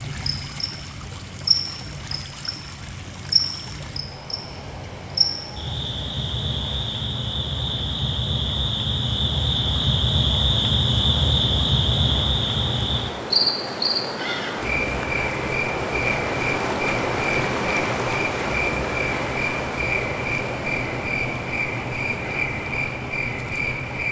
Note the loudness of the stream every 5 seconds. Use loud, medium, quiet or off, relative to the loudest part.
quiet, quiet, medium, loud, medium.